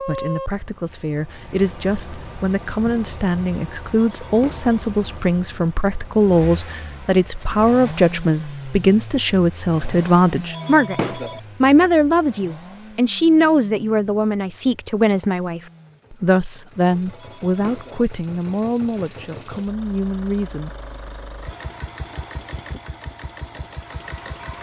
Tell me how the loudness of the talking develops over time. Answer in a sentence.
The loudness of the talking goes up, then down.